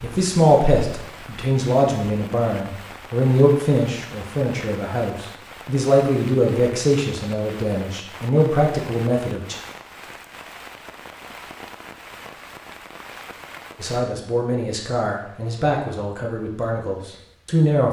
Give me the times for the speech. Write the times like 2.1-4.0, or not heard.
0.0-9.6, 13.8-17.8.